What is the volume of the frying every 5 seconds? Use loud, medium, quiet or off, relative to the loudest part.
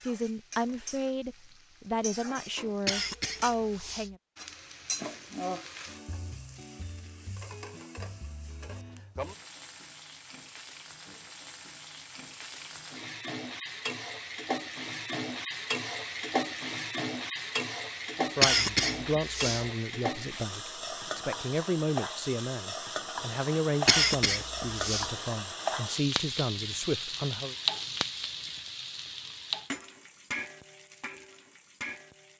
medium, medium, medium, loud, loud, loud, medium.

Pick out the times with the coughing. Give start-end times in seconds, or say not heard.
2.9-4.1, 18.4-19.6, 23.9-25.1.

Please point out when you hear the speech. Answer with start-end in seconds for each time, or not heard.
0.0-4.2, 18.1-27.6.